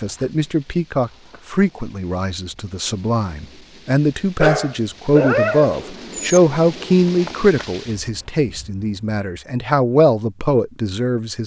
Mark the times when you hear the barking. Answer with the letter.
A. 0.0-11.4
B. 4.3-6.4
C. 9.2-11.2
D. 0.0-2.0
B.